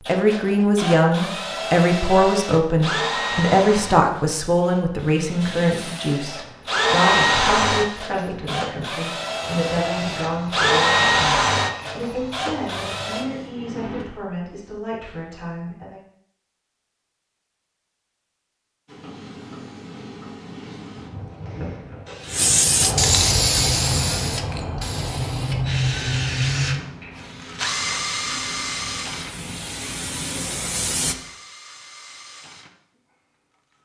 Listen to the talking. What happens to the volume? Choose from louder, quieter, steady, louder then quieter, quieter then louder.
quieter.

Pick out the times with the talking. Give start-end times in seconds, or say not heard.
0.1-16.0.